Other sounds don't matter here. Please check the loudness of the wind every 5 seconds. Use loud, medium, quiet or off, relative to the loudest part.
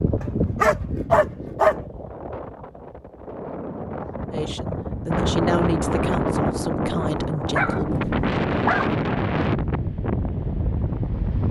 medium, loud, loud.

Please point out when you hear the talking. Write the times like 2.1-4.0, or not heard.
4.3-8.1.